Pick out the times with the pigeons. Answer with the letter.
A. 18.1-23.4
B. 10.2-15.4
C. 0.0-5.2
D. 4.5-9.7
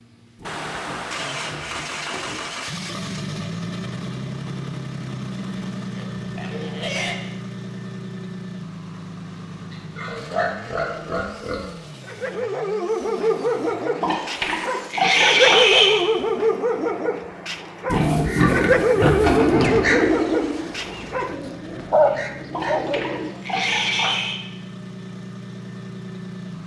A.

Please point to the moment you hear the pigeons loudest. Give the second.
20 s.